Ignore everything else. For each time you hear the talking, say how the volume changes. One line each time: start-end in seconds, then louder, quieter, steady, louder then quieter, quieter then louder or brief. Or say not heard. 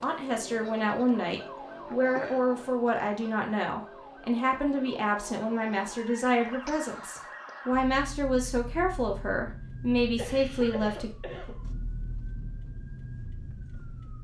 0.0-11.1 steady.